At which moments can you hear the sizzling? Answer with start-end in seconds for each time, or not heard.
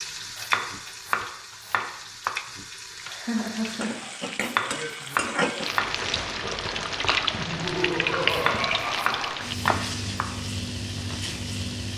0.0-11.9.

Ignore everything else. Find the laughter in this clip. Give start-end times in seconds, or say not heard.
3.0-4.0, 7.3-9.3.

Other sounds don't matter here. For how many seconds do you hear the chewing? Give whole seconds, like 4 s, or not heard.
3 s.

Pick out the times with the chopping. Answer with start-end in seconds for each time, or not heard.
0.3-2.3, 4.4-5.9, 8.3-10.2.